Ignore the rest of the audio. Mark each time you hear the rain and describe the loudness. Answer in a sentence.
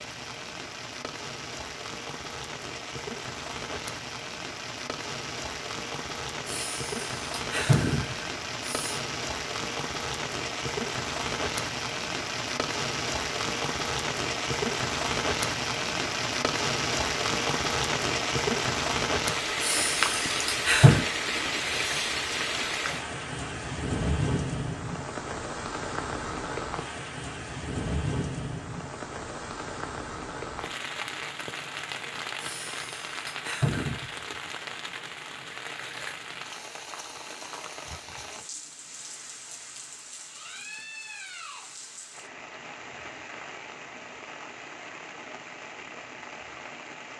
You can hear the rain from 0.0 to 47.1 s, getting louder then quieter.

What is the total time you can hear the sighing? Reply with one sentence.
You can hear the sighing for 6 seconds altogether.